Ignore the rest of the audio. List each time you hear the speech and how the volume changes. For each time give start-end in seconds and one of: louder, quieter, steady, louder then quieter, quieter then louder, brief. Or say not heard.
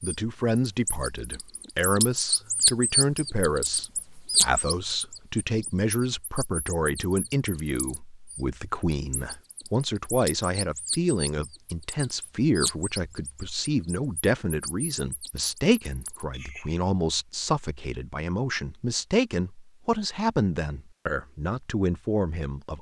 0.0-22.7 steady.